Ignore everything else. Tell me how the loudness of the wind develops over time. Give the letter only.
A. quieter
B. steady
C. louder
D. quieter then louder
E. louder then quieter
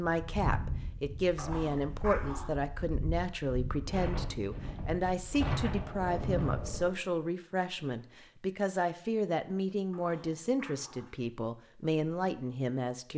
D.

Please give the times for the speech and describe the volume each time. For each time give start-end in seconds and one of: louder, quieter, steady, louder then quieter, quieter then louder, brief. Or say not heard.
0.0-13.1 steady.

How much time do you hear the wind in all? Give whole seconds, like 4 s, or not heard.
7 s.